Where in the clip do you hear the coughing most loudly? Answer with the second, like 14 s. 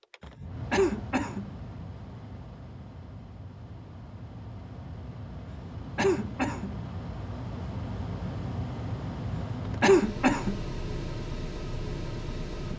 10 s.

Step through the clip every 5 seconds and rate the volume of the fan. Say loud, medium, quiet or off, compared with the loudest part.
medium, loud, loud.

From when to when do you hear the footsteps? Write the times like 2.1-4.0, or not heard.
not heard.